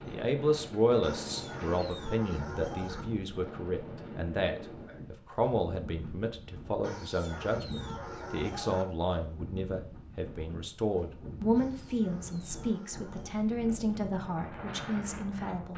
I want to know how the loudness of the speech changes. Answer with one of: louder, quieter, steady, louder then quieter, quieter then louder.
steady.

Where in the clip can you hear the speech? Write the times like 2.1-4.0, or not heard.
0.1-15.7.